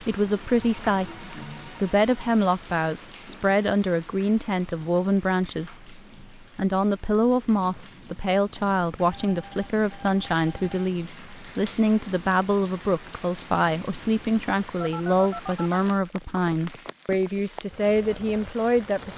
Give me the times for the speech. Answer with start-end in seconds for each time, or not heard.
0.0-19.1.